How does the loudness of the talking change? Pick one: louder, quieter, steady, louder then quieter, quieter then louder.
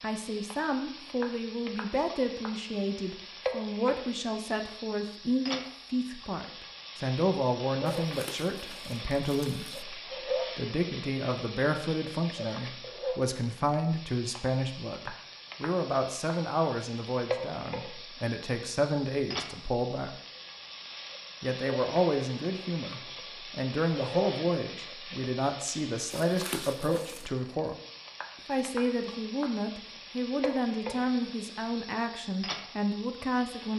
steady.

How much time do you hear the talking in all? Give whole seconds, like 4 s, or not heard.
32 s.